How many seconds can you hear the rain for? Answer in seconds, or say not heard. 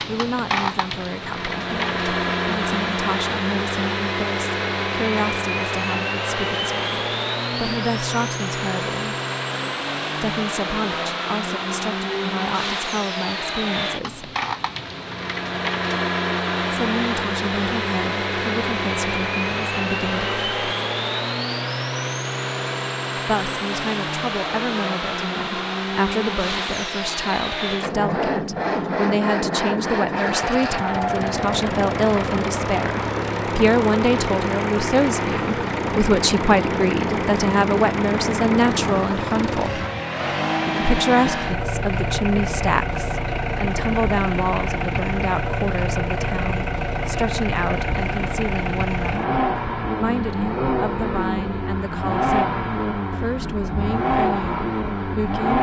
not heard.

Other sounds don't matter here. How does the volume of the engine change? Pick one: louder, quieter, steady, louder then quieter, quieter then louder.
steady.